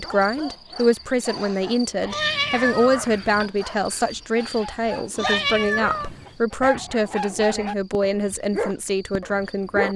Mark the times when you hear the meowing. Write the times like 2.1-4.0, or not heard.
2.1-3.5, 5.2-6.3.